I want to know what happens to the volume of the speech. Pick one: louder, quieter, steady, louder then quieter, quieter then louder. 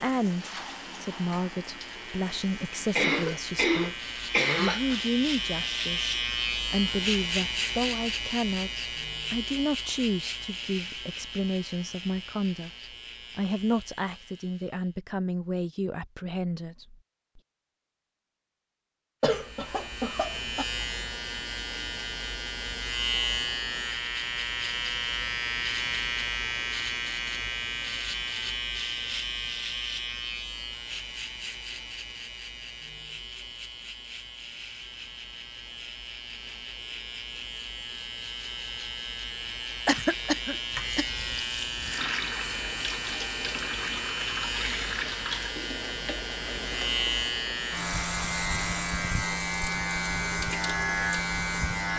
steady.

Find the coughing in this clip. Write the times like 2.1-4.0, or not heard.
3.0-4.8, 19.2-20.6, 39.9-41.0.